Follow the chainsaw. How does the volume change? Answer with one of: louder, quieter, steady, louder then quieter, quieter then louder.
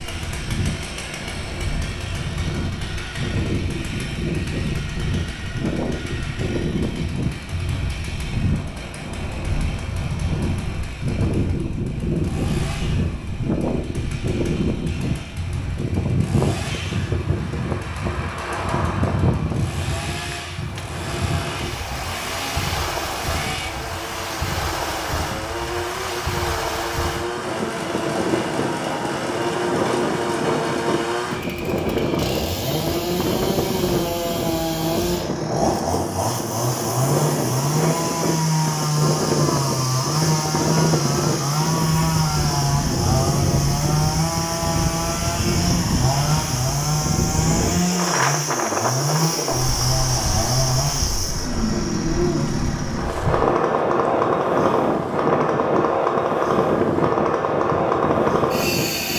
louder.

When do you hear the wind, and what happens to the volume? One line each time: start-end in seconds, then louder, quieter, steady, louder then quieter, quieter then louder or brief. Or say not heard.
0.0-59.1 steady.